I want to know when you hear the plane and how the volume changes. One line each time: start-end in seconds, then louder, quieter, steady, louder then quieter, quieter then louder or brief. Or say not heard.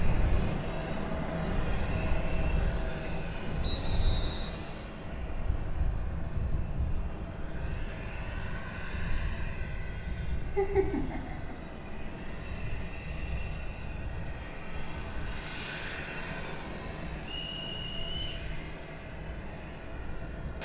0.0-20.6 quieter.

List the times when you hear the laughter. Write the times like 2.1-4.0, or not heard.
10.6-11.6.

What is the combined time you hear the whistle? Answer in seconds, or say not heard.
2 s.